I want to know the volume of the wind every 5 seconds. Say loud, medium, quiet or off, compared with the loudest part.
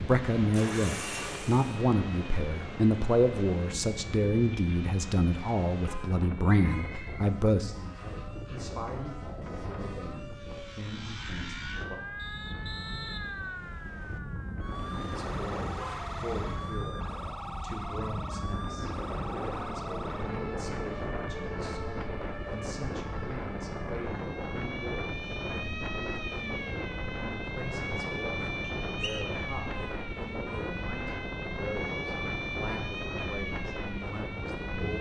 loud, medium, medium, loud, loud, loud, loud.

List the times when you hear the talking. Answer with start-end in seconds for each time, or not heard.
0.0-12.0, 14.8-34.9.